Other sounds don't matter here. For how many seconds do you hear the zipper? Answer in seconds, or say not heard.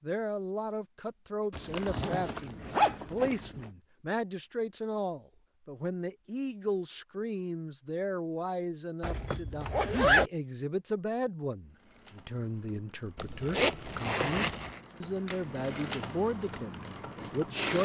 5 s.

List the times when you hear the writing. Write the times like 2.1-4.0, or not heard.
not heard.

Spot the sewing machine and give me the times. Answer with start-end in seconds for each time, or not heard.
11.7-17.8.